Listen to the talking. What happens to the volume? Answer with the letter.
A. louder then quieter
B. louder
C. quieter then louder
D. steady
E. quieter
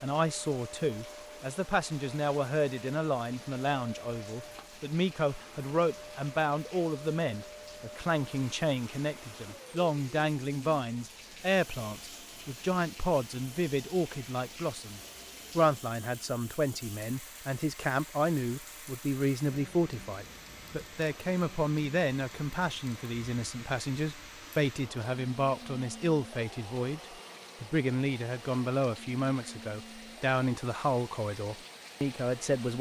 D.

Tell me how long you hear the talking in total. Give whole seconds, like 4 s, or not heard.
32 s.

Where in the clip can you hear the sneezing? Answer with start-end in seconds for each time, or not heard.
not heard.